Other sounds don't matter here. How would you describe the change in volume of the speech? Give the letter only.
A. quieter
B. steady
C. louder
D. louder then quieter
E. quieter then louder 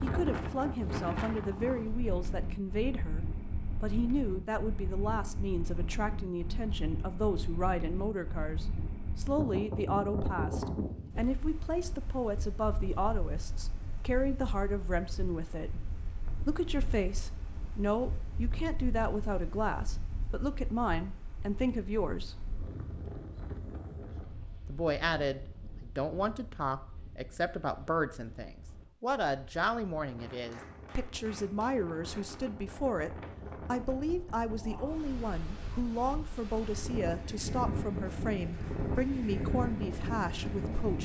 B.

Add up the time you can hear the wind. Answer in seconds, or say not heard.
41 s.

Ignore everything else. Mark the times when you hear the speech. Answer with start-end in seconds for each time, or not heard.
0.0-15.8, 16.4-22.4, 24.6-41.0.